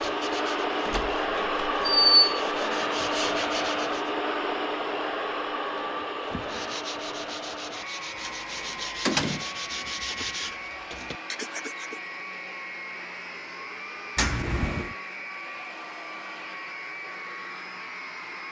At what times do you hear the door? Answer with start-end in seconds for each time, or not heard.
0.8-2.1, 8.2-9.4, 14.2-14.9.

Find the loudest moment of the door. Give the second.
2 s.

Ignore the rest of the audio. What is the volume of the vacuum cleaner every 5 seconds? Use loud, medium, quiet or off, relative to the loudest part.
loud, medium, medium, medium.